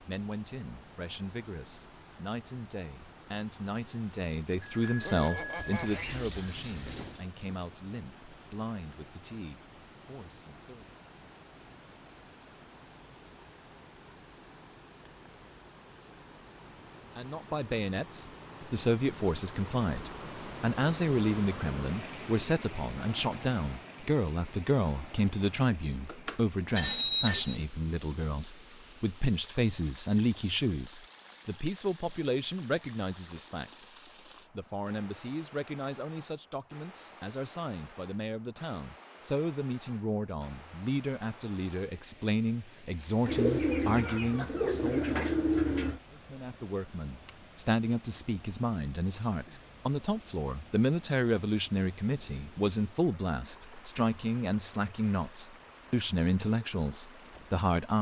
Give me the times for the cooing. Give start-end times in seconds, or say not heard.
5.5-7.2, 43.2-46.0.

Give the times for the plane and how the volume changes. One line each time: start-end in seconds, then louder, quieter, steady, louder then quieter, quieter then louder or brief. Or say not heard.
not heard.